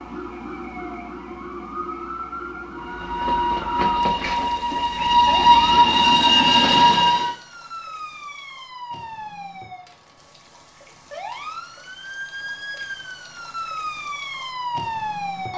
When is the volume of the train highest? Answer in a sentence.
The loudest moment of the train is at 6 seconds.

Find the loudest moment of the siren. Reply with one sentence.
The volume of the siren peaks at 15 seconds.